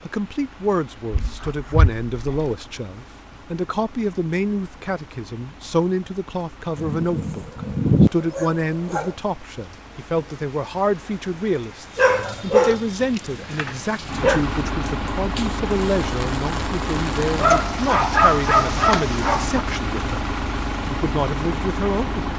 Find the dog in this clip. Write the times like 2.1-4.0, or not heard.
1.1-2.5, 6.8-9.2, 11.9-14.4, 17.4-19.6.